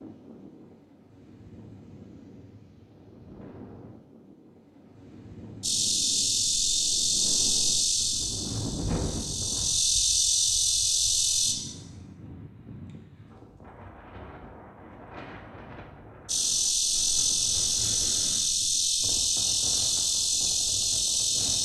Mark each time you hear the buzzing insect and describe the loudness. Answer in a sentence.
The buzzing insect can be heard from 5.6 to 11.6 s, getting quieter then louder; and from 16.2 to 21.6 s, at a steady volume.